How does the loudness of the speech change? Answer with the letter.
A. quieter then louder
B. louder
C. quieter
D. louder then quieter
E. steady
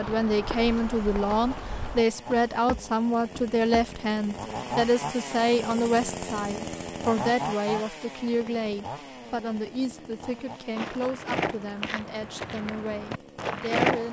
C.